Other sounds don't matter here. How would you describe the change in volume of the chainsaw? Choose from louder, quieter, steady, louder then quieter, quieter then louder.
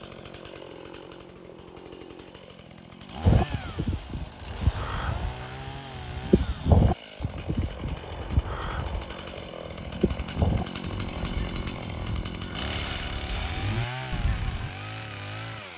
louder.